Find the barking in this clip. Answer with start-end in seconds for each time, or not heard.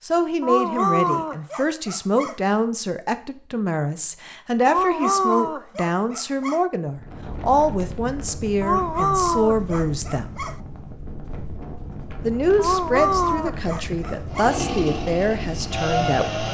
0.4-2.4, 4.7-6.6, 8.6-10.6, 12.6-14.6.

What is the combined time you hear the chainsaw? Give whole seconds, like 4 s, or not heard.
2 s.